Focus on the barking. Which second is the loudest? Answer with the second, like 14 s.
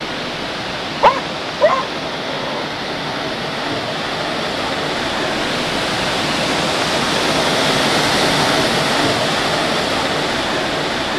1 s.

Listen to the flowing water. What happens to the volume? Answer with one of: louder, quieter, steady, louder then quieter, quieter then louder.
louder.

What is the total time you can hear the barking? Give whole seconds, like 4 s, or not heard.
2 s.